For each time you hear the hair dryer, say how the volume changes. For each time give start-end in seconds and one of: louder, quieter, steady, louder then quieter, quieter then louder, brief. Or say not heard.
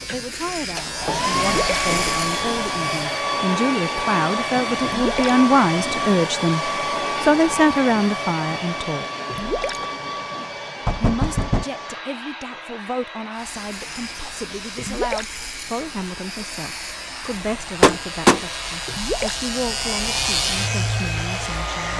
0.0-21.9 quieter then louder.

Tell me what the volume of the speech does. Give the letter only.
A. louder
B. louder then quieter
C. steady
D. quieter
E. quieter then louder
B.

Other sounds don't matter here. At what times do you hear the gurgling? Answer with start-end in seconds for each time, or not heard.
1.4-1.8, 4.8-5.3, 9.2-9.8, 14.8-15.3, 18.9-19.4.